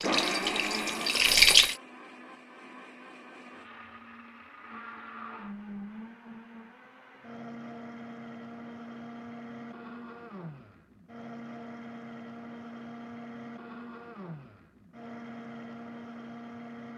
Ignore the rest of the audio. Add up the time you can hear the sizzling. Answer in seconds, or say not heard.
2 s.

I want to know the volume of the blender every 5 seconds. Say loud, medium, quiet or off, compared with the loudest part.
loud, medium, medium, medium.